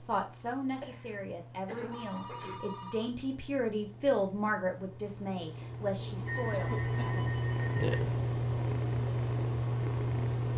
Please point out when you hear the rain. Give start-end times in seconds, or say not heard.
not heard.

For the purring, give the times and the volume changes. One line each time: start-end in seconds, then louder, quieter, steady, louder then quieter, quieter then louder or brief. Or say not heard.
0.0-10.5 louder.